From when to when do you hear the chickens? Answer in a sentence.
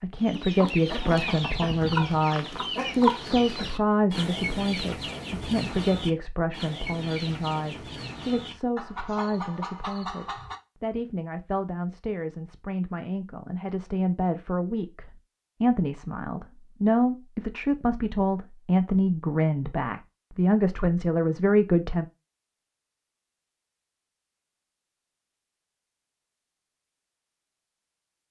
You can hear the chickens from 0.2 to 10.6 s.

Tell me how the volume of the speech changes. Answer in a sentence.
The volume of the speech goes down, then up.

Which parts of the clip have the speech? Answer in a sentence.
You can hear the speech from 0.0 to 22.1 s.